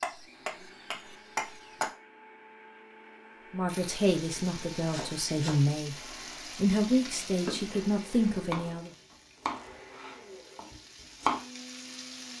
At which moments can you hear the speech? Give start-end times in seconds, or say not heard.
3.5-6.0, 6.5-8.9.